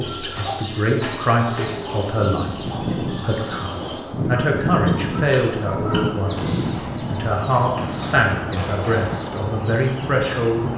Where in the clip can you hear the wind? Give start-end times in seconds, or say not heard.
2.2-10.7.